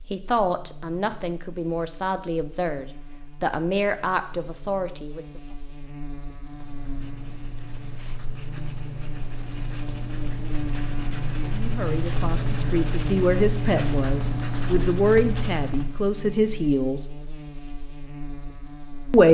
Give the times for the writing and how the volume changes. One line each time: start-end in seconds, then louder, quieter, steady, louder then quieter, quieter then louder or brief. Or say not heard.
6.5-16.0 louder.